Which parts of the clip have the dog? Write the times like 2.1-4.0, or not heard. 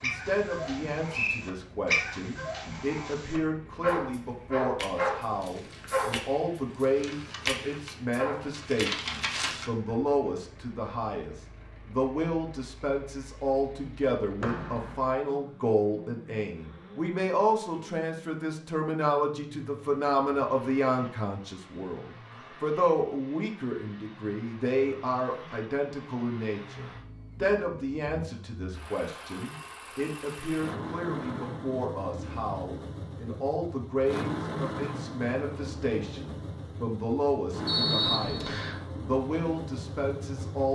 0.0-9.9.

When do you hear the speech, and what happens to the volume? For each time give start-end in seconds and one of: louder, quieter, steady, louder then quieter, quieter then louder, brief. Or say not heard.
0.0-40.7 steady.